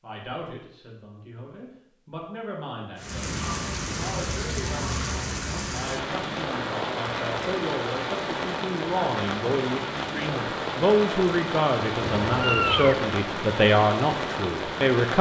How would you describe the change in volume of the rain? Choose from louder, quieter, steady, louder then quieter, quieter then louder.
steady.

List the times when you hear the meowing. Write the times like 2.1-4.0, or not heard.
12.0-13.1.